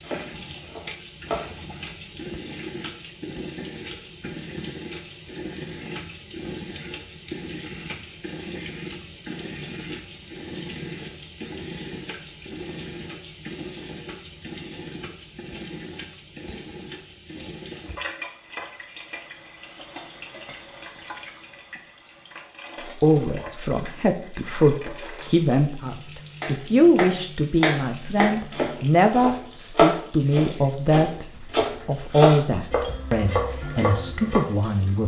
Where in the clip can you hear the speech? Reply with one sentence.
You can hear the speech from 22.9 to 35.0 s.